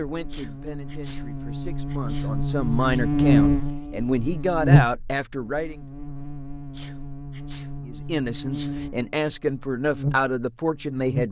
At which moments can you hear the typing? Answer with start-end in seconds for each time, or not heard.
not heard.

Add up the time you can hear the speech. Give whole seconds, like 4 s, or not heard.
9 s.